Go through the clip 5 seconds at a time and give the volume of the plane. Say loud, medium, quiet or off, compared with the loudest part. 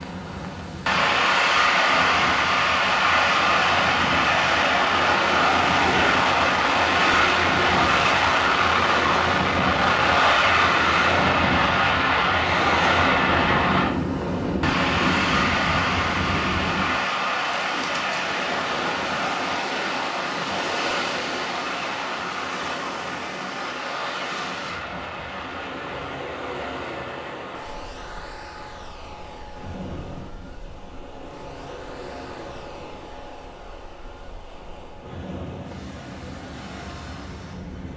loud, loud, loud, medium, medium, quiet, quiet, quiet.